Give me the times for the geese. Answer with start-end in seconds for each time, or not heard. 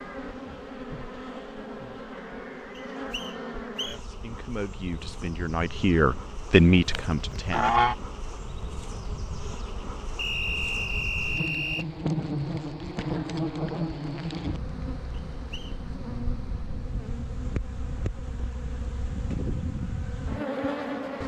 6.5-8.0.